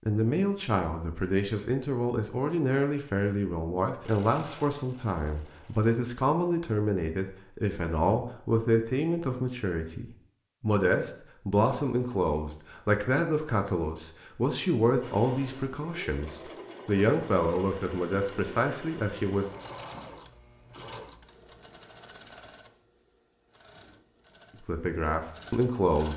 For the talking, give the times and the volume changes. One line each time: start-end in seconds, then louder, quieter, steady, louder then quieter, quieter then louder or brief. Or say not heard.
0.1-19.4 steady
24.6-26.1 brief.